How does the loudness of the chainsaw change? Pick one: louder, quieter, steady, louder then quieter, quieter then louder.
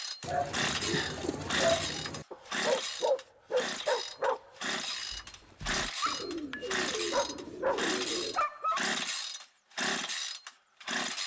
steady.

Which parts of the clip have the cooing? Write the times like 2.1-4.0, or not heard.
0.2-2.2, 6.0-8.4.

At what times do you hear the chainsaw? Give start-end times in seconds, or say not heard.
0.0-11.2.